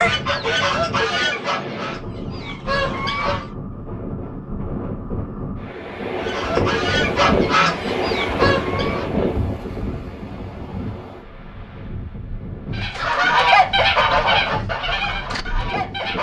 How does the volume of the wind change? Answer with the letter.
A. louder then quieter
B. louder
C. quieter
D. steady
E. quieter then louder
A.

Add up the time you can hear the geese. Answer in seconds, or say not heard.
10 s.